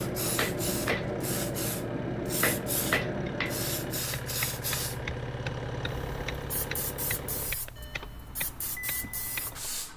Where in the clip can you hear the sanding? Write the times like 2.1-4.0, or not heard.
not heard.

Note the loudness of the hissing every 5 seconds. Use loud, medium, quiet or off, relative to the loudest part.
loud, medium.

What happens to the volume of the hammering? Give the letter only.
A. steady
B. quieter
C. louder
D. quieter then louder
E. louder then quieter
B.